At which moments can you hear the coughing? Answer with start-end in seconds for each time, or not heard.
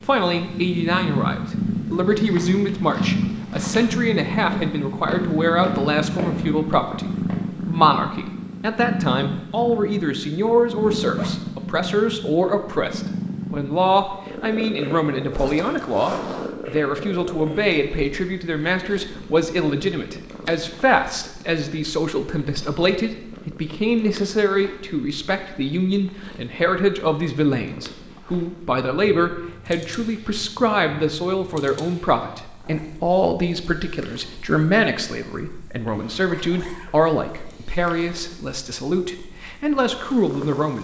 not heard.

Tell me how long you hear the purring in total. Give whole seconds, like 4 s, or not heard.
41 s.